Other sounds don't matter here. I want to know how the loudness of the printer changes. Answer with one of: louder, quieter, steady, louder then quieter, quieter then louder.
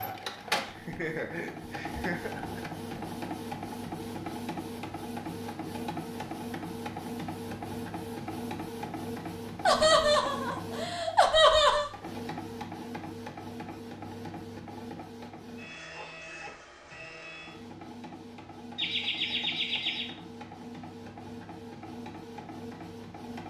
quieter.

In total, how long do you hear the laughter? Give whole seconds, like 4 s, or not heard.
6 s.